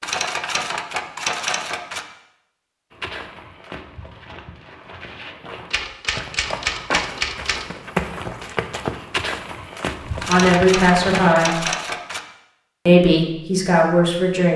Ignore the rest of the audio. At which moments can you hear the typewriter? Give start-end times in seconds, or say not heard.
0.0-2.0, 5.7-7.7, 10.2-12.2.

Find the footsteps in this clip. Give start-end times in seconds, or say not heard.
2.9-11.3.